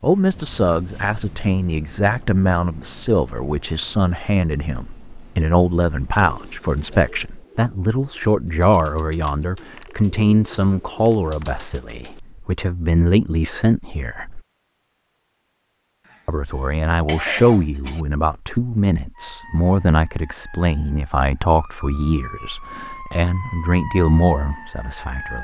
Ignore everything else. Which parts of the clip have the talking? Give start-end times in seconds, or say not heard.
0.0-14.4, 16.2-25.3.